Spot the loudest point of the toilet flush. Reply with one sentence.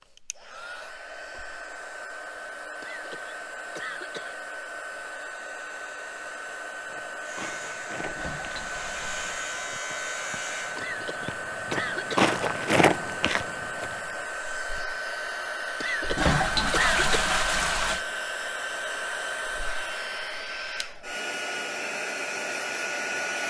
The loudest moment of the toilet flush is at 17 seconds.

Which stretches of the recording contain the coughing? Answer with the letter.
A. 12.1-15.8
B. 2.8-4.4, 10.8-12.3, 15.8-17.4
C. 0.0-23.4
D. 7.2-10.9
B.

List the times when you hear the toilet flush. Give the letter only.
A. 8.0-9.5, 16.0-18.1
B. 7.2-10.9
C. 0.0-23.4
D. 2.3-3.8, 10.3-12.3
A.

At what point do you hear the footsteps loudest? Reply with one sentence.
The volume of the footsteps peaks at 13 seconds.